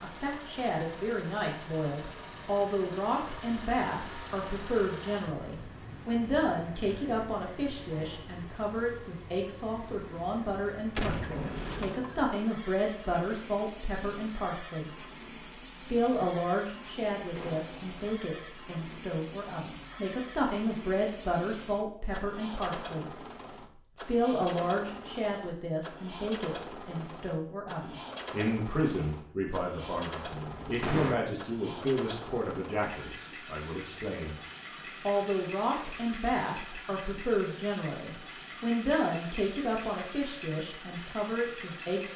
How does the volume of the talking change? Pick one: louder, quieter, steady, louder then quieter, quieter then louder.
steady.